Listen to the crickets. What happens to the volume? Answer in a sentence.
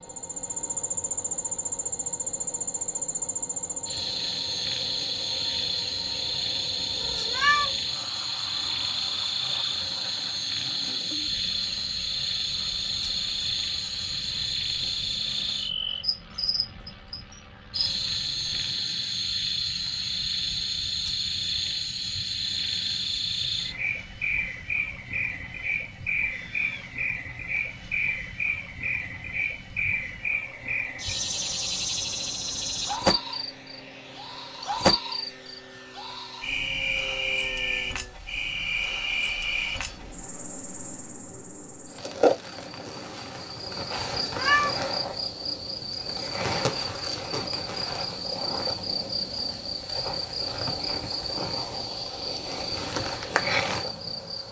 The volume of the crickets stays about the same.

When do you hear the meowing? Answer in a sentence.
The meowing can be heard from 7.0 to 7.7 s and from 44.0 to 44.8 s.